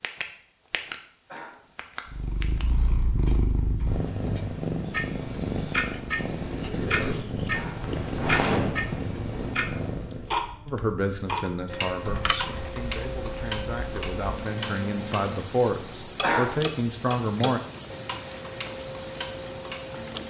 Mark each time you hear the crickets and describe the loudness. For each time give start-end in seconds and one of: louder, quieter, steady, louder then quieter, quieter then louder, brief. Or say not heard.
4.8-20.2 louder.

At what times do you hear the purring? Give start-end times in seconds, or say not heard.
2.0-10.3.